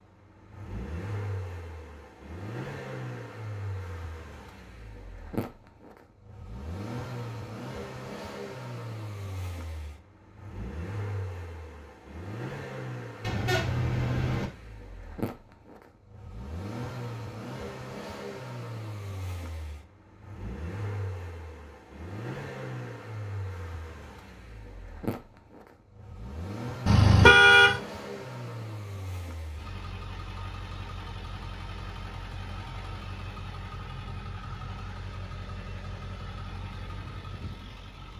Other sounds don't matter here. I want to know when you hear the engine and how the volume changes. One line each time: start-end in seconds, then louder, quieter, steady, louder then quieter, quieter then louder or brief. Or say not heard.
0.0-38.1 steady.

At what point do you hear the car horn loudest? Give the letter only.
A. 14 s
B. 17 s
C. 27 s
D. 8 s
C.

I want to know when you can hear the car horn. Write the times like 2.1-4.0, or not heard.
13.2-14.5, 26.9-27.8.